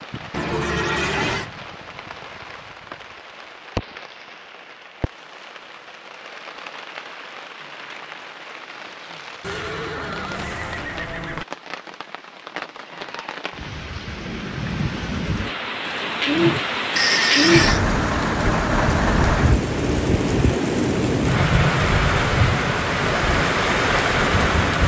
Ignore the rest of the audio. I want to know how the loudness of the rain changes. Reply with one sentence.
The loudness of the rain goes up.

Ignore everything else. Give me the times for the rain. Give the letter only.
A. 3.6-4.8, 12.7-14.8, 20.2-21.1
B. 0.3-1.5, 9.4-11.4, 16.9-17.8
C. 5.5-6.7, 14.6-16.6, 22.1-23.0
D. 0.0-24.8
D.